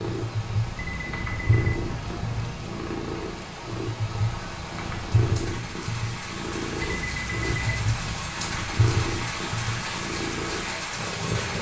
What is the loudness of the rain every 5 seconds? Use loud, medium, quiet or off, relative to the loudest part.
medium, loud, loud.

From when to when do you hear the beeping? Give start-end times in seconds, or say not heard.
0.8-2.8, 6.8-8.3.